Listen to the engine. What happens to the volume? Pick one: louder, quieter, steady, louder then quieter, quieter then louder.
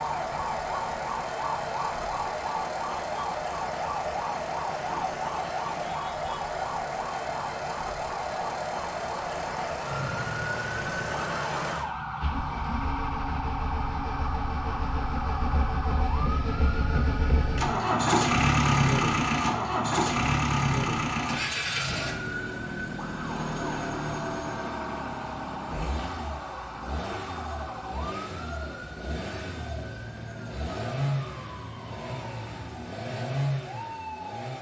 louder then quieter.